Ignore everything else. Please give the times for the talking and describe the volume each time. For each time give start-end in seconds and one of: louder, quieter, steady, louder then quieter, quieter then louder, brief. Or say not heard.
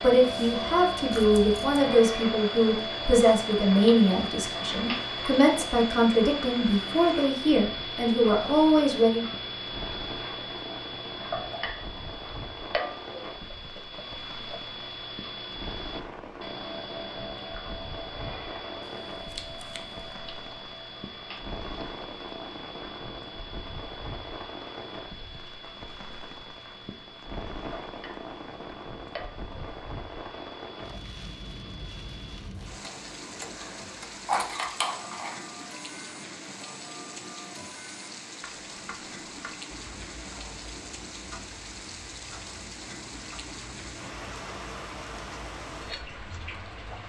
0.0-9.2 steady.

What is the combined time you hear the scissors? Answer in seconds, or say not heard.
4 s.